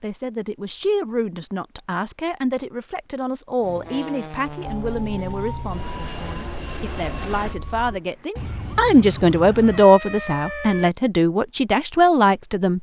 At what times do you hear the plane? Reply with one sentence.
The plane can be heard from 3.6 to 7.6 s.